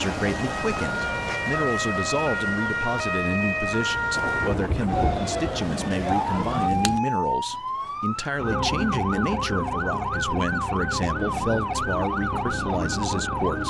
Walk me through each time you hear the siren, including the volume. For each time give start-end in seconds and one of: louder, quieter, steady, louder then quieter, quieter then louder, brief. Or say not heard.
0.0-13.6 steady.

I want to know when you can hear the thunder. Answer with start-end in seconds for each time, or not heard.
4.1-7.0.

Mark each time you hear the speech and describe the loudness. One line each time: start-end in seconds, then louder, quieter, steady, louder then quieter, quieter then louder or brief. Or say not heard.
0.0-13.6 steady.